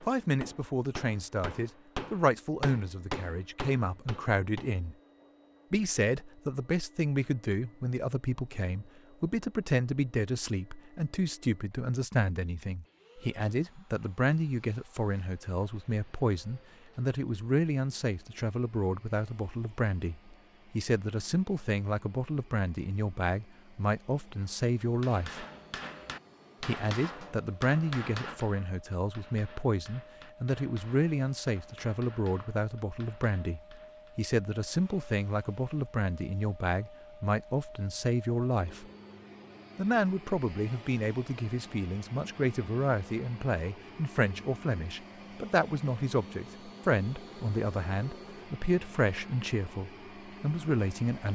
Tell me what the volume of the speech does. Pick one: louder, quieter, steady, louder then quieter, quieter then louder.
steady.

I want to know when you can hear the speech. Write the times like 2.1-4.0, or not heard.
0.0-5.0, 5.7-25.4, 26.6-38.9, 39.8-51.3.